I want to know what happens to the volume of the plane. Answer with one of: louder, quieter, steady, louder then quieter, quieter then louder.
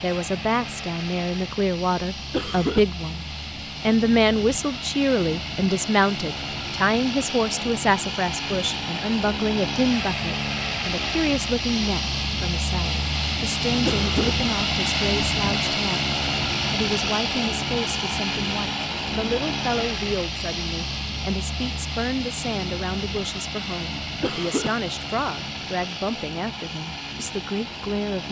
louder then quieter.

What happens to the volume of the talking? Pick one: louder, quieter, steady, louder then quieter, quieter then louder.
quieter.